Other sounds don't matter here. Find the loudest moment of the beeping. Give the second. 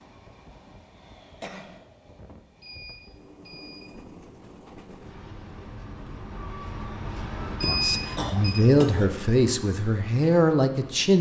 8 s.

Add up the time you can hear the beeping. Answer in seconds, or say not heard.
2 s.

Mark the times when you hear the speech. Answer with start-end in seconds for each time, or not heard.
7.7-11.1.